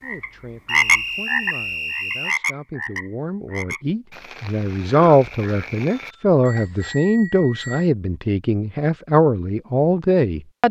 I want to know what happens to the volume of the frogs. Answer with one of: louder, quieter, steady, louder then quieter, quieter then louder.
quieter.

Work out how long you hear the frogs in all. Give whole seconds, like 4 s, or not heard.
7 s.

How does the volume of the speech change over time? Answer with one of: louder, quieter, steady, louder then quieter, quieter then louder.
louder.